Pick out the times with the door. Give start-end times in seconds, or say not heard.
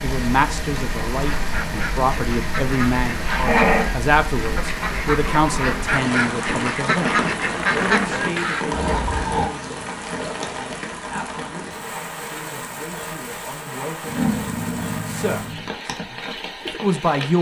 not heard.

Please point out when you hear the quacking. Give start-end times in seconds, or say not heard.
1.1-8.7.